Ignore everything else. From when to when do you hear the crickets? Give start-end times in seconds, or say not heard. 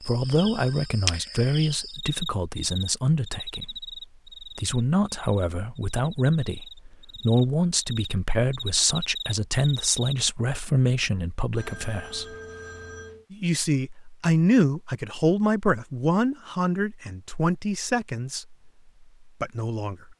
0.0-10.2.